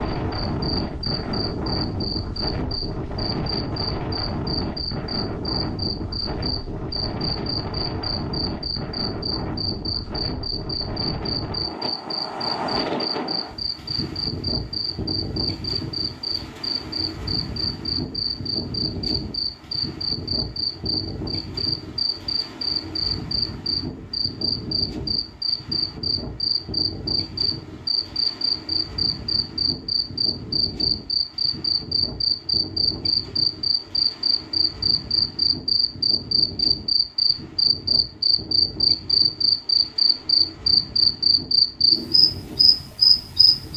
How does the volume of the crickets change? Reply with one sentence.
The volume of the crickets goes up.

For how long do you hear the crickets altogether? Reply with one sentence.
You can hear the crickets for 44 seconds altogether.